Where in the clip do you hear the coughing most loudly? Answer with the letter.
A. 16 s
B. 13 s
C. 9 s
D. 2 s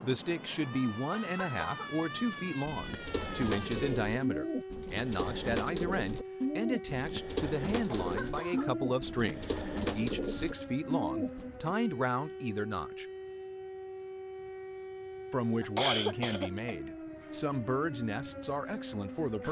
A.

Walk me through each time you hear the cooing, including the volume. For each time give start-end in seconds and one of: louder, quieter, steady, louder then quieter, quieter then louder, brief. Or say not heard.
2.6-11.4 steady.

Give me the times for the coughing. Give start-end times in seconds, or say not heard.
1.1-1.9, 7.8-8.7, 15.6-16.7.